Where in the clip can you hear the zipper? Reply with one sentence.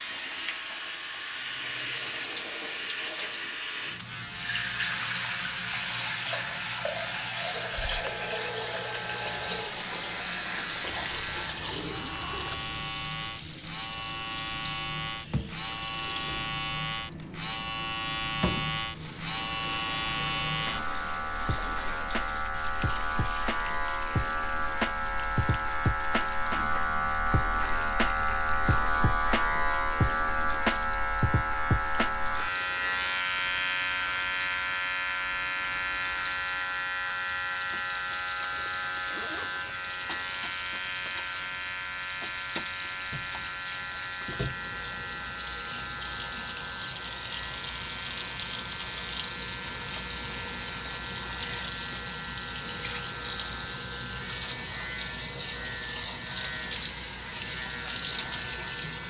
You can hear the zipper from 10.9 to 12.8 s and from 38.5 to 39.8 s.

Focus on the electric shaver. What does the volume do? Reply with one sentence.
The loudness of the electric shaver goes up, then down.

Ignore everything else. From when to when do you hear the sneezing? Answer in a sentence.
You can't hear the sneezing here.